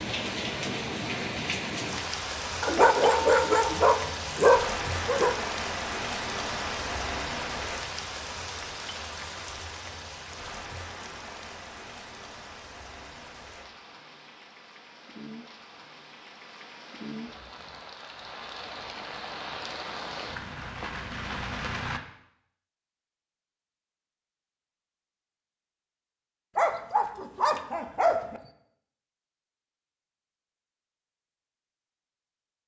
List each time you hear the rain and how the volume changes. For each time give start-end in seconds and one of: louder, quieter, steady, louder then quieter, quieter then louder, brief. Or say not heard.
0.0-22.0 quieter then louder.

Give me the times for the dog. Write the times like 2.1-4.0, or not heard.
2.6-5.3, 26.6-28.4.